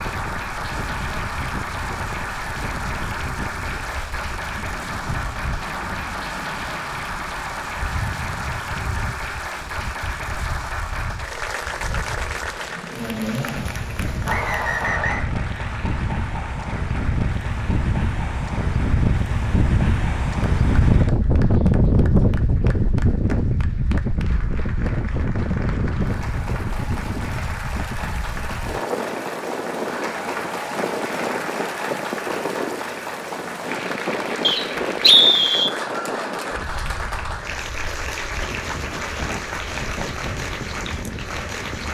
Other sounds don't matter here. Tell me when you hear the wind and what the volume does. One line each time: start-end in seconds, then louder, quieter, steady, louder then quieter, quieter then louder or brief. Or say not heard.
0.0-41.8 louder then quieter.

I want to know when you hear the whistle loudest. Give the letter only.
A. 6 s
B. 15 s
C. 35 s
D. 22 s
C.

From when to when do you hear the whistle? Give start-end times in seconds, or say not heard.
14.2-15.2, 34.4-35.7.